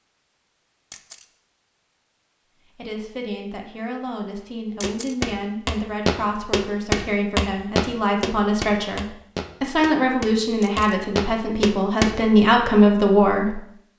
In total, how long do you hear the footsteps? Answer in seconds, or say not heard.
7 s.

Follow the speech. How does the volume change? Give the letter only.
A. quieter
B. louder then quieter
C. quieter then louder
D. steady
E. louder
E.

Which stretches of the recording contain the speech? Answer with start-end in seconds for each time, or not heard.
2.8-13.6.